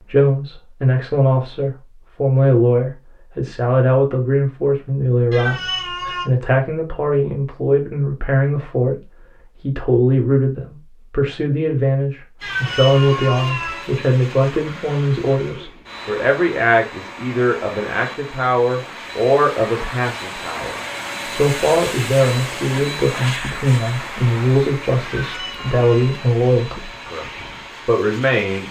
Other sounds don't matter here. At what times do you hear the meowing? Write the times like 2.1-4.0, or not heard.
5.3-6.2, 12.4-13.8, 25.1-26.1.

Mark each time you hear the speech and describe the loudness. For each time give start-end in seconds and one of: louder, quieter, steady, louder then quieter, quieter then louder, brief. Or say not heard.
0.1-27.2 steady
27.9-28.6 brief.